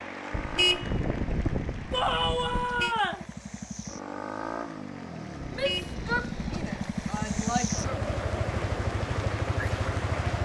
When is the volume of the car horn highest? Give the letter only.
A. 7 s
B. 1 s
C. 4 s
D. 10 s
B.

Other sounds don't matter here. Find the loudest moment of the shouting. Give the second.
2 s.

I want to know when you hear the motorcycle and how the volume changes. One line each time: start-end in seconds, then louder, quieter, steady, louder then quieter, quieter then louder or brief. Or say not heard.
0.0-10.4 louder.